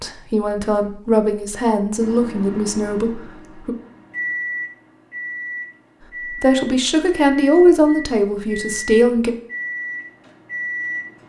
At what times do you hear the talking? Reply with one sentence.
The talking can be heard from 0.0 to 3.8 s and from 6.3 to 9.3 s.